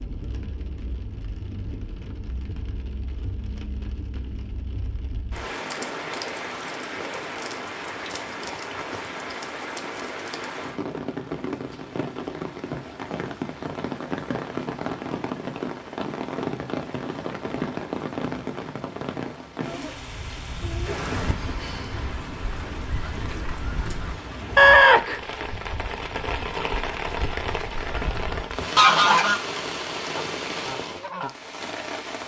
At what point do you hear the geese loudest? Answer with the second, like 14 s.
25 s.